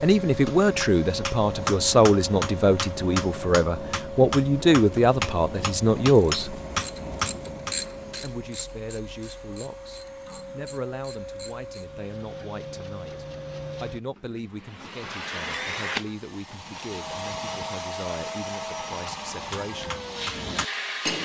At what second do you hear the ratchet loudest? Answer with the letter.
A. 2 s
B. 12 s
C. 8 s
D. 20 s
C.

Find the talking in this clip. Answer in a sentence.
The talking can be heard from 0.0 to 6.6 s and from 8.2 to 20.0 s.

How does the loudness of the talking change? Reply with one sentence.
The volume of the talking goes down.